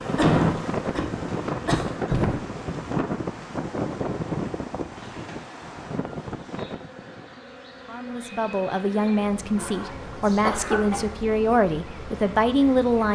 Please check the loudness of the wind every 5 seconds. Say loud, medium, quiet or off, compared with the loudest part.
loud, medium, off.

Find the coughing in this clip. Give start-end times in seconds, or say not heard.
0.1-2.4, 9.6-11.1.